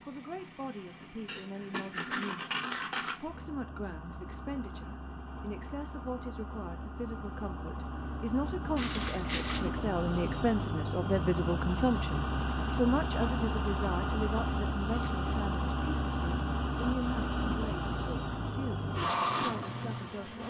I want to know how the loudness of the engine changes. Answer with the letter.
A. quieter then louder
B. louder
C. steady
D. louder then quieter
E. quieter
B.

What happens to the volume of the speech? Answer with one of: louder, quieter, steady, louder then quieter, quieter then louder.
louder then quieter.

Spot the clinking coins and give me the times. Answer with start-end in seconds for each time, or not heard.
1.2-3.2, 8.8-9.8, 14.8-15.2.